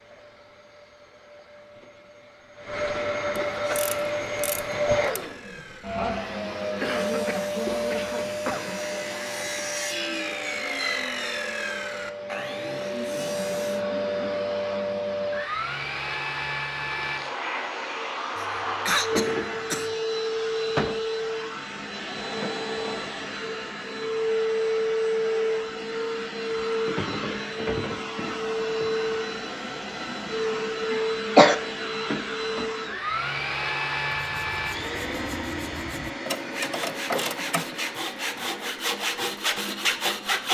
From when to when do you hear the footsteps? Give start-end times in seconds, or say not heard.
not heard.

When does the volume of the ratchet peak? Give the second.
37 s.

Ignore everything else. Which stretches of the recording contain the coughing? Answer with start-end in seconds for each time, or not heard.
6.8-8.8, 18.4-19.9, 30.9-31.6.